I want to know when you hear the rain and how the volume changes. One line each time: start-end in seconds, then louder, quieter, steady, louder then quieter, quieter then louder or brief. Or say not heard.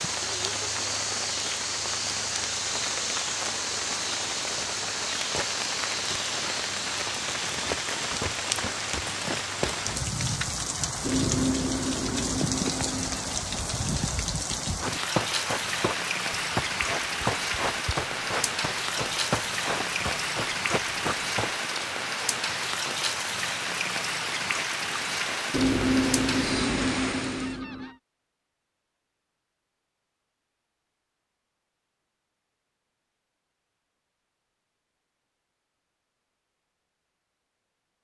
0.0-27.6 steady.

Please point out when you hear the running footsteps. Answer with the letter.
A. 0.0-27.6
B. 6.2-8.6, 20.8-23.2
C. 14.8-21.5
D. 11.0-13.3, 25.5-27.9
C.